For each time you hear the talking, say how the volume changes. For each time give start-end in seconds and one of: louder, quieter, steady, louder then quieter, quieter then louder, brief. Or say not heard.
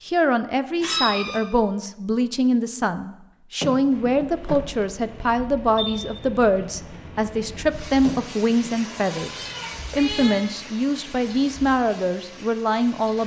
0.1-13.2 steady.